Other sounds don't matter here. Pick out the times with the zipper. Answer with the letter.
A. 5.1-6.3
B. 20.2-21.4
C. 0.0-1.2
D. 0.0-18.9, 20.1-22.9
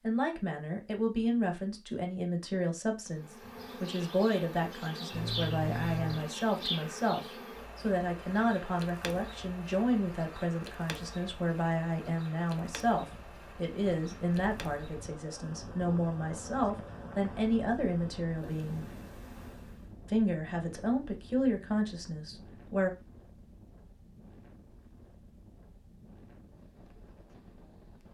A.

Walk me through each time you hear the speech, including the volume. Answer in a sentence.
The speech can be heard from 0.0 to 18.9 s, at a steady volume; and briefly from 20.1 to 22.9 s.